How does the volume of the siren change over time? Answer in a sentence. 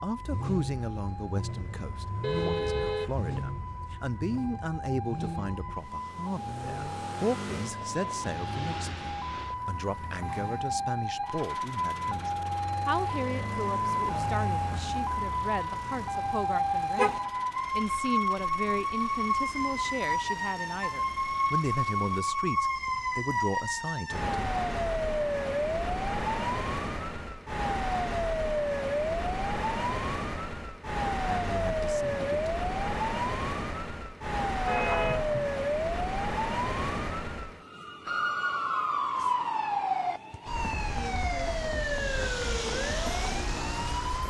The volume of the siren goes up.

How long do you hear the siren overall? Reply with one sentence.
You can hear the siren for 44 seconds altogether.